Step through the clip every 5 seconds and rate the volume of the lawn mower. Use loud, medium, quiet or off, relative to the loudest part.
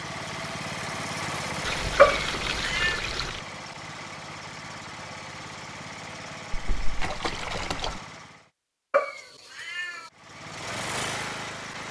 loud, medium, loud.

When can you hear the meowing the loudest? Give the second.
2 s.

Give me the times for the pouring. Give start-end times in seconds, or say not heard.
1.6-3.4, 6.5-8.0.